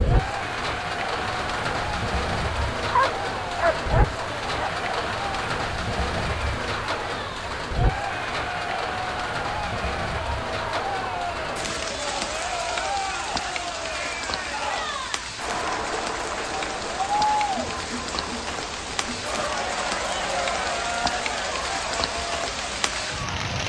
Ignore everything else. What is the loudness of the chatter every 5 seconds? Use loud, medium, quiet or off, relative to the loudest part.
medium, loud, loud, loud, loud.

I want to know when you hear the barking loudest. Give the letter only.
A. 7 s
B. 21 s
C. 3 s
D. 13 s
C.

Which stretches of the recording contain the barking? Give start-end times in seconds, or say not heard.
3.0-4.7.